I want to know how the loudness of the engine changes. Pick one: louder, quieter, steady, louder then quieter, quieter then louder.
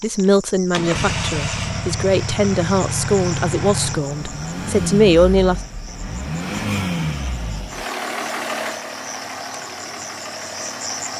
quieter.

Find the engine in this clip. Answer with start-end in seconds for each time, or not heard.
0.0-11.1.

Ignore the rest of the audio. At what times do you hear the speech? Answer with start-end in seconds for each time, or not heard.
0.0-5.6.